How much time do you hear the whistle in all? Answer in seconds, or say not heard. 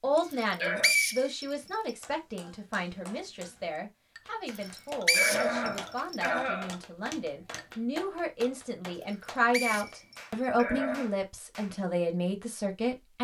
5 s.